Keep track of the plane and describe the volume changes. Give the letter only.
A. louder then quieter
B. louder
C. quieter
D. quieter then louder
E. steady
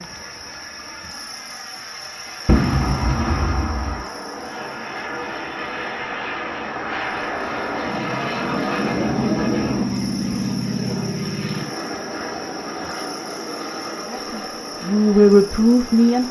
A.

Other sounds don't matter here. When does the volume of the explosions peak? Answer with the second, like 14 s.
3 s.